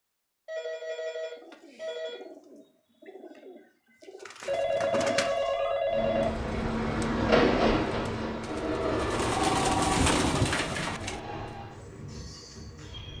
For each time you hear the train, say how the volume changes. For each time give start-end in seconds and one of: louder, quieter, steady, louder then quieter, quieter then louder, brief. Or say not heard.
5.8-13.1 quieter.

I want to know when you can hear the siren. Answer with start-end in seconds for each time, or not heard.
not heard.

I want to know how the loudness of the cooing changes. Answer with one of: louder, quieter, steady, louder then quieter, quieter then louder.
louder.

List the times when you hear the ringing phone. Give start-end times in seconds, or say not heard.
0.5-2.2, 4.5-6.5, 9.3-10.4.